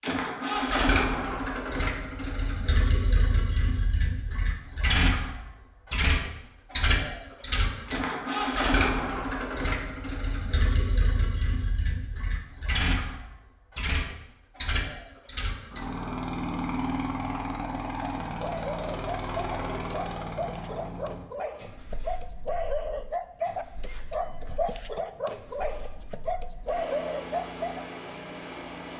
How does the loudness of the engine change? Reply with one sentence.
The loudness of the engine goes down.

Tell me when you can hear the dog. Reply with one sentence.
The dog can be heard from 17.9 to 28.0 s.